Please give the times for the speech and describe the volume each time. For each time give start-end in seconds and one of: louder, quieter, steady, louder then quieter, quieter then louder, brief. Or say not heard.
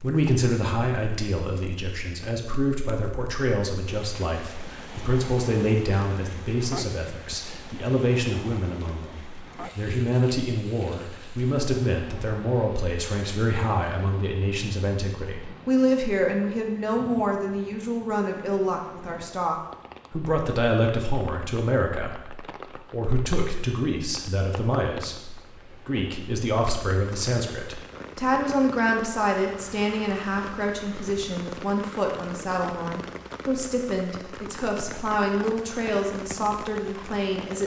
0.0-37.6 steady.